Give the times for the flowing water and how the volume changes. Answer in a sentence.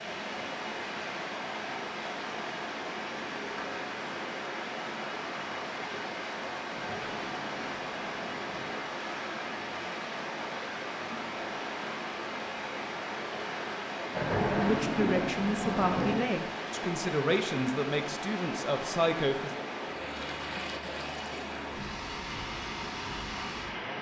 The flowing water can be heard from 0.0 to 23.9 s, at a steady volume.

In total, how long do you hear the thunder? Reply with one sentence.
The thunder can be heard for 4 seconds in total.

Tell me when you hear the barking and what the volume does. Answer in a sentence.
You can't hear the barking here.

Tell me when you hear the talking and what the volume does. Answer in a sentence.
The talking can be heard from 14.6 to 19.6 s, at a steady volume.